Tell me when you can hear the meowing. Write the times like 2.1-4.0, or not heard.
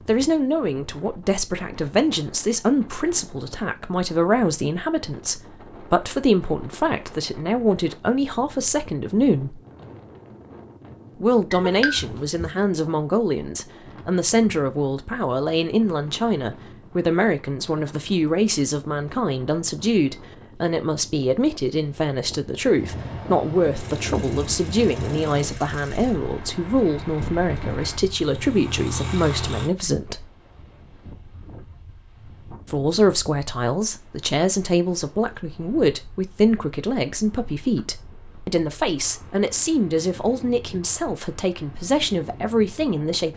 11.5-12.5.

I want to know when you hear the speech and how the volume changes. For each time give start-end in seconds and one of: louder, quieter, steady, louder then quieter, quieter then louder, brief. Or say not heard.
0.1-9.6 steady
11.2-30.2 steady
32.7-43.3 steady.